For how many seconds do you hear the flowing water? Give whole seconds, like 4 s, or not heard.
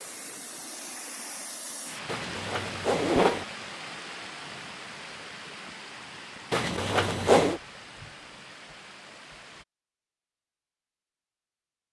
10 s.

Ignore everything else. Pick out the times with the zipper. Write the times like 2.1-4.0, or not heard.
2.0-3.5, 6.5-7.6.